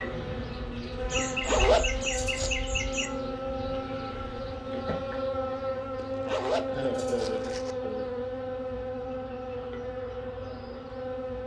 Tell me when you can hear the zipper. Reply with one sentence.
You can hear the zipper from 1.1 to 2.5 s and from 6.0 to 7.8 s.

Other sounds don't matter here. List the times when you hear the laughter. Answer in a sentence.
The laughter can be heard from 1.1 to 3.1 s and from 6.7 to 8.1 s.